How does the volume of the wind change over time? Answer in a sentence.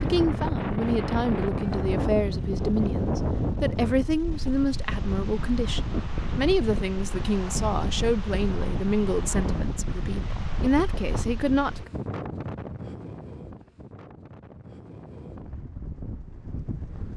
The volume of the wind goes down.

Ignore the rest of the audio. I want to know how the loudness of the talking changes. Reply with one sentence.
The volume of the talking stays about the same.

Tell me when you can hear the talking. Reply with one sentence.
The talking can be heard from 0.0 to 11.9 s.